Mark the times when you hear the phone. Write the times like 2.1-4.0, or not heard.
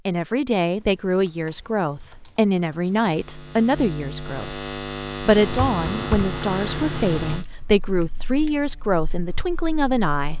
not heard.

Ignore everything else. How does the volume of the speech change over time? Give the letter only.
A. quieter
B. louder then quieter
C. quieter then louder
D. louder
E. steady
E.